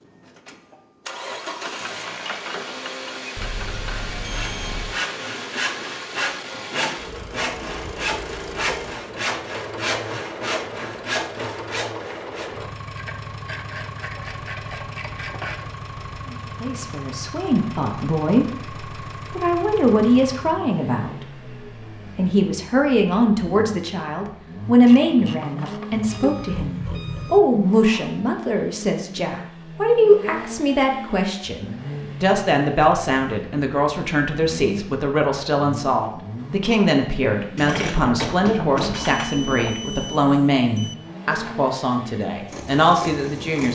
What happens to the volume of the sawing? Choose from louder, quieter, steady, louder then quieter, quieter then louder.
steady.